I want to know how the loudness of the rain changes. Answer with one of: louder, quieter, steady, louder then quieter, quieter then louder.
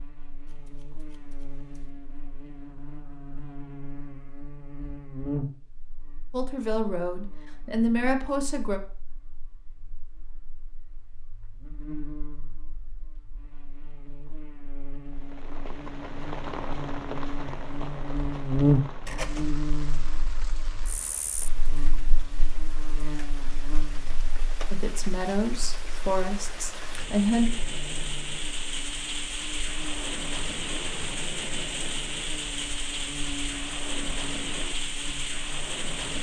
quieter then louder.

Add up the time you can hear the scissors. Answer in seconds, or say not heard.
2 s.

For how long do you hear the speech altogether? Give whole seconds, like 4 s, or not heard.
5 s.